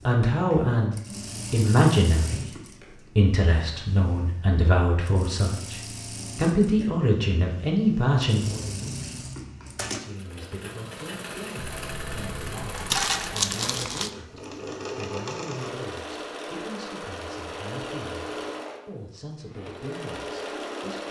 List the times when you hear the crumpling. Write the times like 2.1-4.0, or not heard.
12.9-14.1.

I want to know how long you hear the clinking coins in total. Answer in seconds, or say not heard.
2 s.